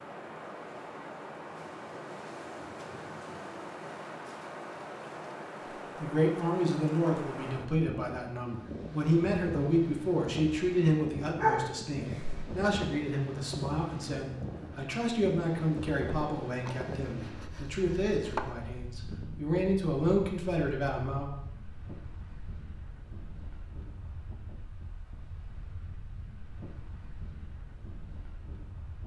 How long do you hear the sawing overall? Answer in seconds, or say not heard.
2 s.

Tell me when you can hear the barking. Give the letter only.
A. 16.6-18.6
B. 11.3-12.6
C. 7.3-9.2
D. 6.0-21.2
B.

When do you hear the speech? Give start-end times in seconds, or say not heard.
6.0-21.2.